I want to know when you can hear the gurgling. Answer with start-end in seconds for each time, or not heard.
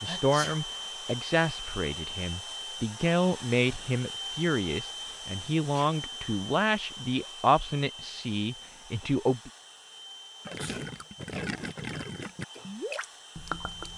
10.4-13.9.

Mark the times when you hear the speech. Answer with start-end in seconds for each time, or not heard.
0.0-9.5.